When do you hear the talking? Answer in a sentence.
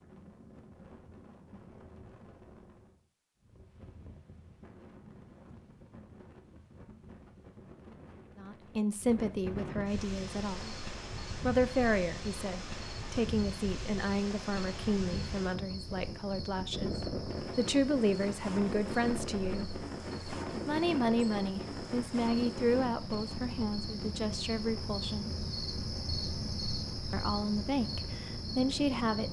You can hear the talking from 8.4 to 10.8 s, from 11.4 to 19.8 s, from 20.6 to 25.4 s and from 27.1 to 29.2 s.